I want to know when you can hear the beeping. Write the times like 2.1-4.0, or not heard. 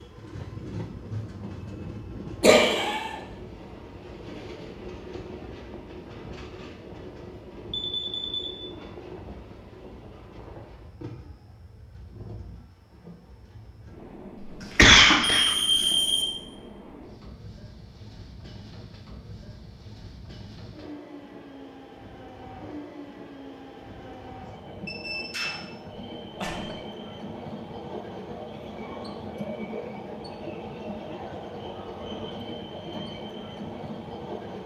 7.7-8.5, 14.3-16.2, 24.9-25.6.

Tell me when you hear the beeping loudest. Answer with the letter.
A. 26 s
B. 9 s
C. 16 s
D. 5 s
C.